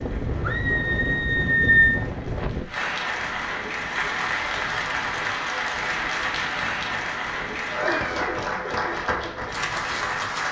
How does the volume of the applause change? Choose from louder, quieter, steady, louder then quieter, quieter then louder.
louder.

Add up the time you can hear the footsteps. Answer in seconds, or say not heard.
not heard.